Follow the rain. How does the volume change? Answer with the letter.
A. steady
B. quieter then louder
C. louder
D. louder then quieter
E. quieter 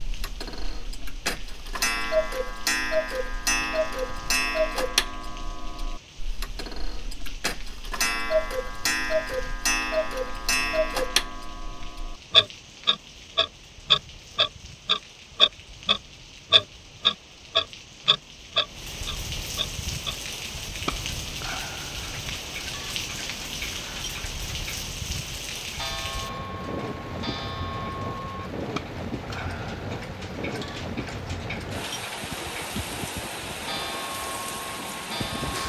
C.